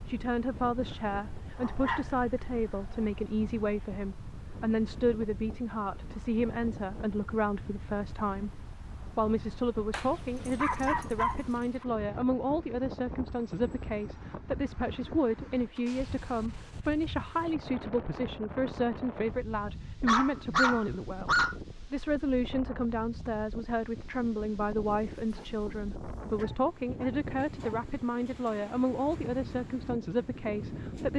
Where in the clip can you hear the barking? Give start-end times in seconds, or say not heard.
0.8-3.0, 9.9-11.8, 20.1-21.6, 25.1-27.8.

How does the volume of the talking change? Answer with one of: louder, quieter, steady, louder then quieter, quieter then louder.
steady.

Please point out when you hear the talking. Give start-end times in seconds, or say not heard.
0.1-31.1.